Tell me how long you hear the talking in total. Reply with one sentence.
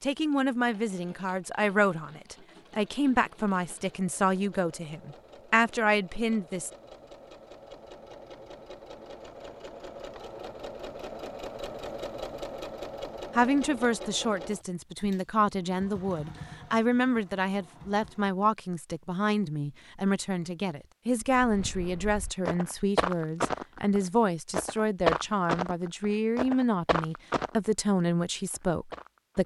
The talking can be heard for 23 seconds in total.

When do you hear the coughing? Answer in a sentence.
The coughing can't be heard in this clip.